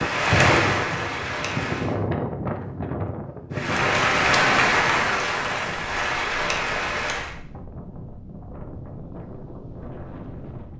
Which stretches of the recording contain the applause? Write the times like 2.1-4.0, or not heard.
0.0-1.9, 3.5-7.3.